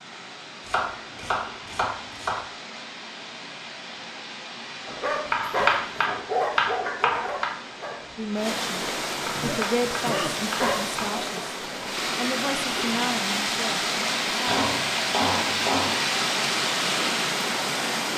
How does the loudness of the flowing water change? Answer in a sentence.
The loudness of the flowing water goes up.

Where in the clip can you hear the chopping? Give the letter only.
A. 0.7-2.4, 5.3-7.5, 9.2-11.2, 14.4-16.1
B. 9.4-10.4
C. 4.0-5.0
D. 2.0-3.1
A.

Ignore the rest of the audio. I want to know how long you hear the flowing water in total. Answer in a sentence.
You can hear the flowing water for 18 seconds altogether.